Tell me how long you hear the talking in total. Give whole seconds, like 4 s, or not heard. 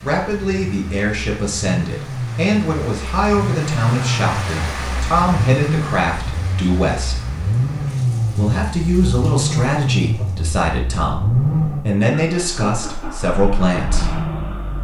13 s.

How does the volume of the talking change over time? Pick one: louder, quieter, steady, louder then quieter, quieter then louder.
steady.